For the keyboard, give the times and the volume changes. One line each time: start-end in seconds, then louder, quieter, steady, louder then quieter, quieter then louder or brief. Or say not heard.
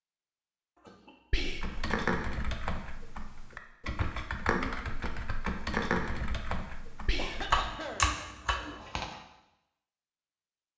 1.5-9.2 quieter then louder.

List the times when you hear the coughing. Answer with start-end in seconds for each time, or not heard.
0.8-1.4, 7.2-8.1.